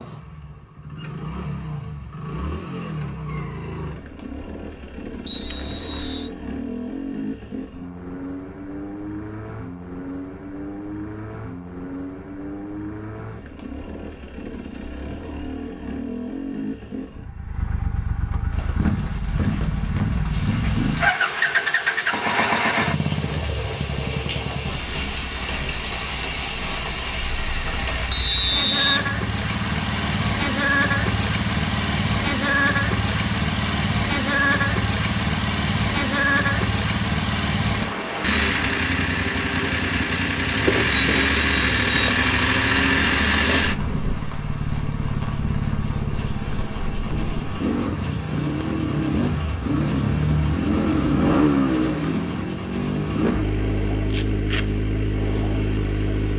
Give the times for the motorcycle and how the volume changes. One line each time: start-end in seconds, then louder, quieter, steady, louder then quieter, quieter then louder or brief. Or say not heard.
0.0-56.3 louder.